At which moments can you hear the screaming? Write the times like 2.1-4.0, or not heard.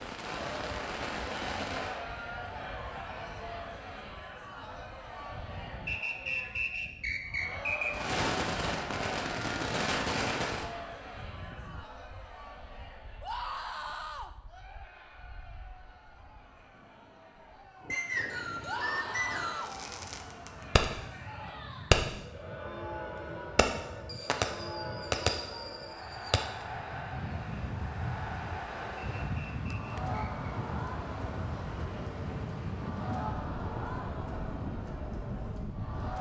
13.2-14.3, 18.6-19.8.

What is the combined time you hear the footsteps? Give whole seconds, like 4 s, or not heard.
not heard.